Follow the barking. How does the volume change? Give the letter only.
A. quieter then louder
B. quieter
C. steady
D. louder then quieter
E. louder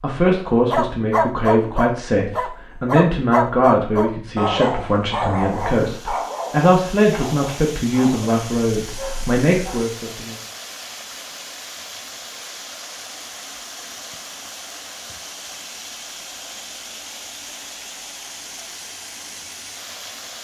B.